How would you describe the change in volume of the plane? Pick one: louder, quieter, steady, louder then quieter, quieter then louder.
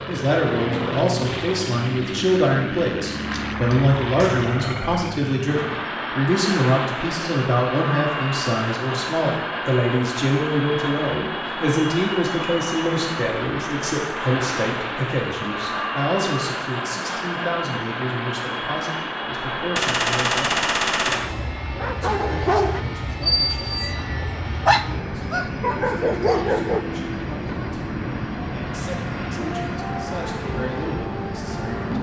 steady.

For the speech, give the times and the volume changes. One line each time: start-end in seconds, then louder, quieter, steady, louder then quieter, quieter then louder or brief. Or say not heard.
0.1-31.9 quieter.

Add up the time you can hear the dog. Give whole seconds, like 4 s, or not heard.
6 s.